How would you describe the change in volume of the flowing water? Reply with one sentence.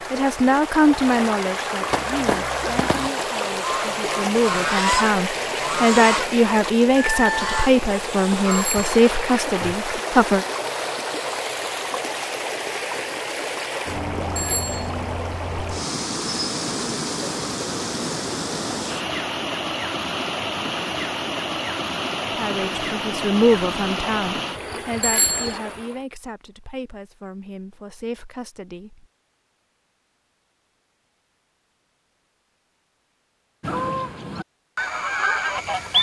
The volume of the flowing water stays about the same.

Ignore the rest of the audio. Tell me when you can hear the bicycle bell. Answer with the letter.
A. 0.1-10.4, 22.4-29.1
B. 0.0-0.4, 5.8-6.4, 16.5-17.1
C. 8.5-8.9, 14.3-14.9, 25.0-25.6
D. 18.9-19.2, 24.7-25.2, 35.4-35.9
C.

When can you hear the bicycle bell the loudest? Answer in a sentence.
The loudest moment of the bicycle bell is at 25 seconds.